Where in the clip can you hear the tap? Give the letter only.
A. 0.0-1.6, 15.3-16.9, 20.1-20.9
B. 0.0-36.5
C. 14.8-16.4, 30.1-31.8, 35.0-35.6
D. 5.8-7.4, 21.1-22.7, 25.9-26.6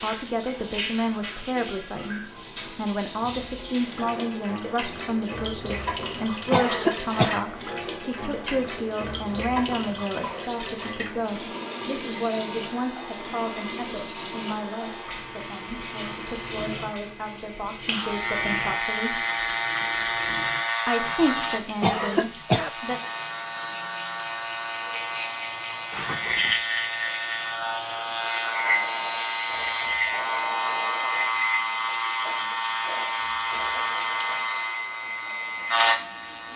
B.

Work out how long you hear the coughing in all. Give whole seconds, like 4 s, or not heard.
4 s.